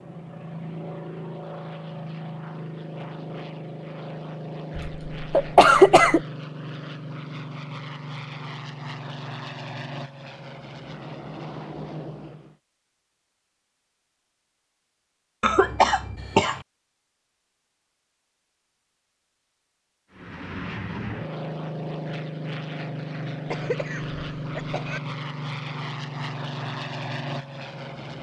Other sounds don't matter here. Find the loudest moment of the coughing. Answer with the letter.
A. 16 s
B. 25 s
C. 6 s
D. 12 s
C.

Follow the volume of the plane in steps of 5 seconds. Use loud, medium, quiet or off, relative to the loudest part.
loud, loud, medium, off, loud, loud.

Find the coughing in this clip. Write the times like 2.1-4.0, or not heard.
4.8-6.2, 15.4-16.6, 23.5-25.0.